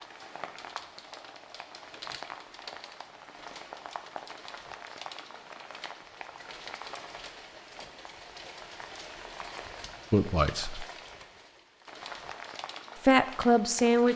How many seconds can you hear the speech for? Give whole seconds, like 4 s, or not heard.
2 s.